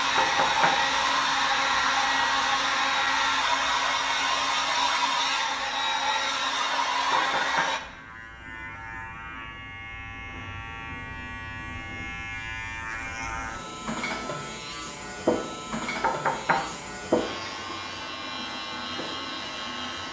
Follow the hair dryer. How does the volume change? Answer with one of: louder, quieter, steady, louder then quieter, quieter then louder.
steady.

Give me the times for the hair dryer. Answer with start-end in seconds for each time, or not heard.
0.0-7.8.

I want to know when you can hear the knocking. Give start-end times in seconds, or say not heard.
0.1-0.8, 7.1-7.7, 16.0-16.7.